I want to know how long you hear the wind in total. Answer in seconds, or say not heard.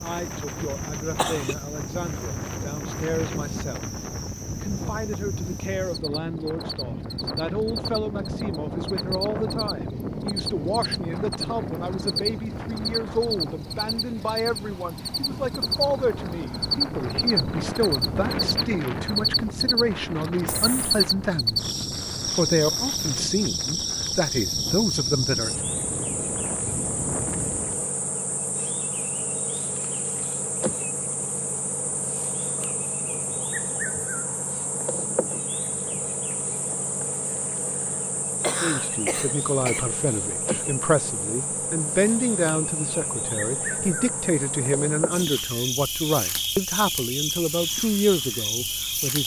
28 s.